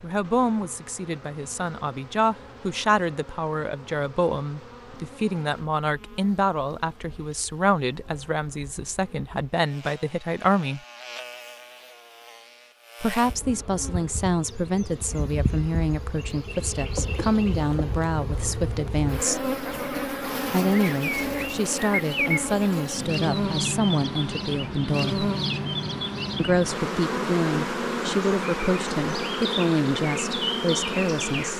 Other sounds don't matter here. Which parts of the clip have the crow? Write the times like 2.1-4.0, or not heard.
not heard.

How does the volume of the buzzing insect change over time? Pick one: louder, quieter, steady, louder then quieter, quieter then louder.
louder.